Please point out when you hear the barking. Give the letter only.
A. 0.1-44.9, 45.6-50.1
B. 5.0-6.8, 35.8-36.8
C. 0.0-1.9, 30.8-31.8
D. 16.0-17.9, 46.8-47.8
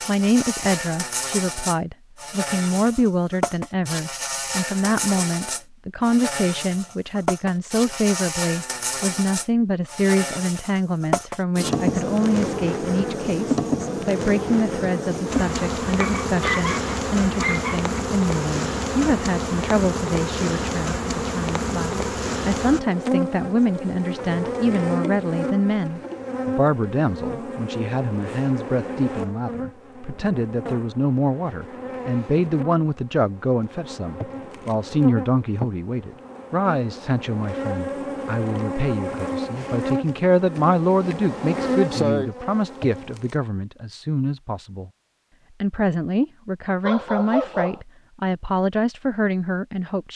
D.